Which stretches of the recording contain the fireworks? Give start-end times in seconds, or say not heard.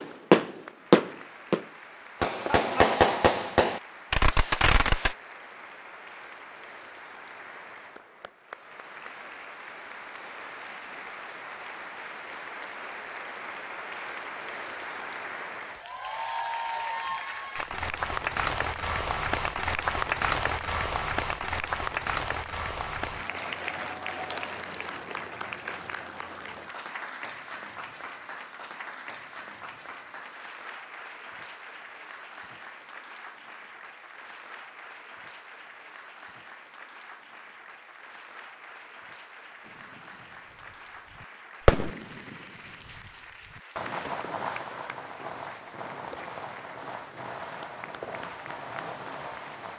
0.0-5.2, 39.6-40.1, 41.2-49.7.